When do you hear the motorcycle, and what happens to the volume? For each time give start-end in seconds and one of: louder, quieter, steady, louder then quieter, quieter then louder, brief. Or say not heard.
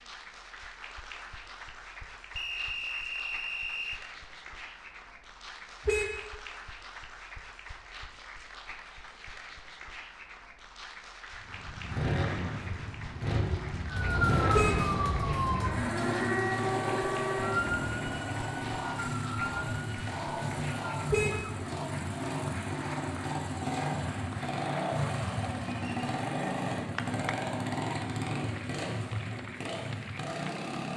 11.4-30.9 steady.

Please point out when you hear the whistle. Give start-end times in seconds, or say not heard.
2.4-4.0.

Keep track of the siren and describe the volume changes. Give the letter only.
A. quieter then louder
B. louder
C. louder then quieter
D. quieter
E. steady
D.